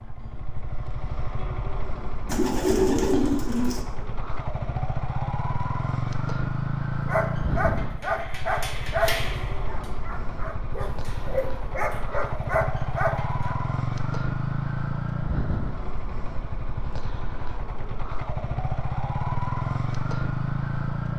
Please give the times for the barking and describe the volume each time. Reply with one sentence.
The barking can be heard from 7.0 to 13.6 s, getting quieter then louder.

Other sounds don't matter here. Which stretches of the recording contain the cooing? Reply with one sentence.
You can hear the cooing from 2.2 to 3.9 s.